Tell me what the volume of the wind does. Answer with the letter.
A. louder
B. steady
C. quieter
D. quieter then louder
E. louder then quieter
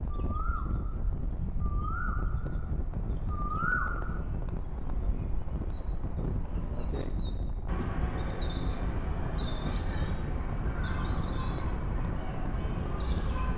B.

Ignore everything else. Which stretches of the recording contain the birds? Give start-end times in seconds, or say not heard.
0.0-13.5.